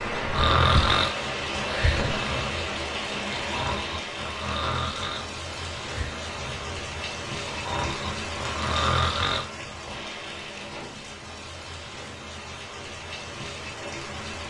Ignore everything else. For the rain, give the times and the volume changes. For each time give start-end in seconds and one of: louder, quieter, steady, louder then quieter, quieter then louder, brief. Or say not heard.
0.0-14.4 quieter.